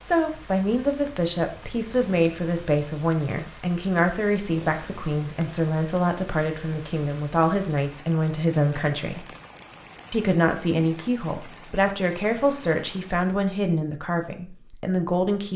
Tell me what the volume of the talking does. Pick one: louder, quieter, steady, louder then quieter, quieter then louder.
steady.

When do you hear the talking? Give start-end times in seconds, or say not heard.
0.0-9.2, 10.1-15.5.